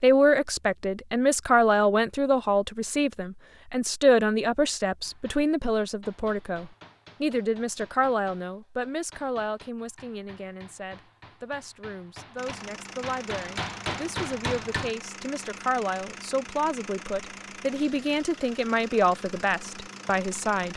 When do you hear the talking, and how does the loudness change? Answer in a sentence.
The talking can be heard from 0.0 to 20.7 s, getting quieter then louder.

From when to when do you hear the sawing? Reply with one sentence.
The sawing can't be heard in this clip.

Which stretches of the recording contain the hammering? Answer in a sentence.
You can hear the hammering from 5.0 to 14.9 s.